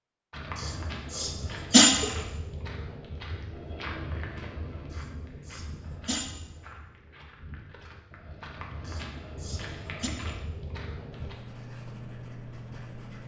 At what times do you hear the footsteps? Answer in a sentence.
You can hear the footsteps from 0.3 to 11.3 s.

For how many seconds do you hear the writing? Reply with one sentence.
You can hear the writing for 2 seconds altogether.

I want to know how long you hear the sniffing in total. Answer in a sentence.
You can hear the sniffing for 4 seconds altogether.